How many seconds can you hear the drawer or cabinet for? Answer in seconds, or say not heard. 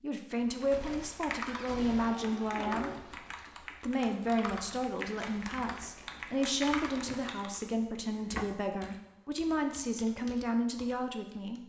3 s.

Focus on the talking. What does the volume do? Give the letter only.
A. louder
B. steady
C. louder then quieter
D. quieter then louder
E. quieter
B.